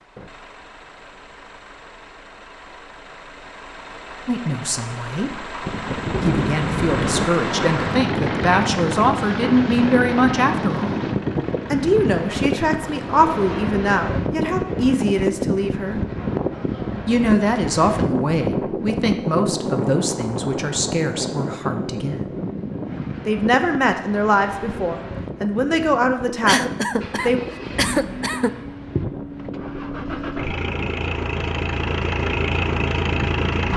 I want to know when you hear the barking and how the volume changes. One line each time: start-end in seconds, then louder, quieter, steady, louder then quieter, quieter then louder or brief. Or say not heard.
not heard.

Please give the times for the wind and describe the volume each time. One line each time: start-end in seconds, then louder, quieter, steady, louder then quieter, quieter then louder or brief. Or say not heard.
5.6-33.7 quieter.